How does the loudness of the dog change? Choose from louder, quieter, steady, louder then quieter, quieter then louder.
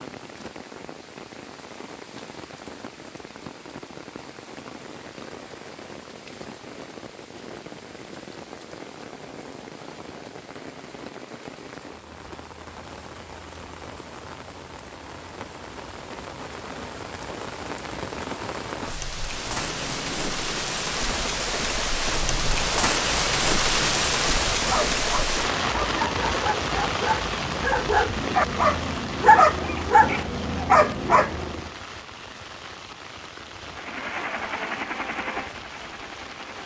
louder.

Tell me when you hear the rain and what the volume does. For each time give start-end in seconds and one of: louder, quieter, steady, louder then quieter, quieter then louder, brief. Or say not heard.
0.0-36.6 louder then quieter.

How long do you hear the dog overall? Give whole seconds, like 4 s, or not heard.
7 s.